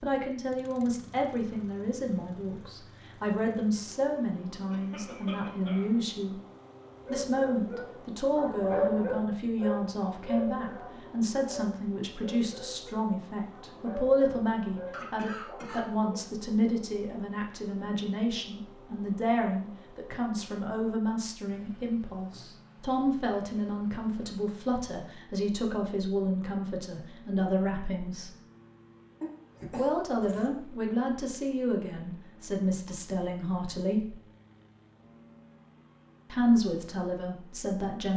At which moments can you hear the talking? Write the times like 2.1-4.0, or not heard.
0.0-6.4, 7.1-28.3, 29.7-34.1, 36.3-38.1.